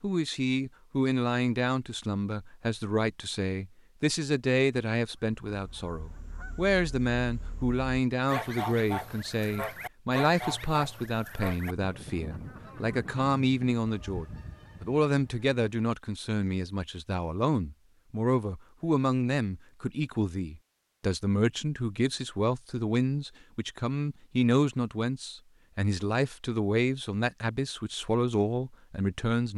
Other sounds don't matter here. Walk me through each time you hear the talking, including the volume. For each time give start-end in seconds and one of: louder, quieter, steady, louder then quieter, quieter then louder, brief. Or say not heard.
0.0-29.5 steady.